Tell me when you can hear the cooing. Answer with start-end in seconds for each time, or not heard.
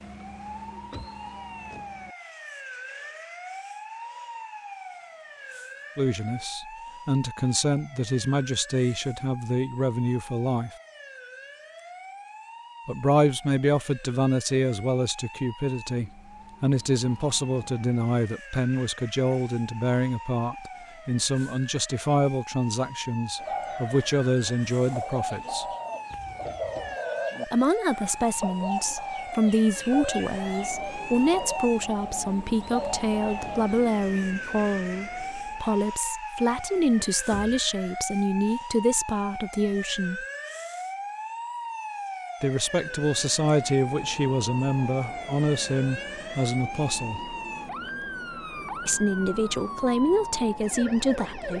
23.4-33.8.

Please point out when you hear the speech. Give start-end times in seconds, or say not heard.
6.0-10.7, 12.8-25.6, 27.4-40.2, 42.4-47.4, 48.9-51.5.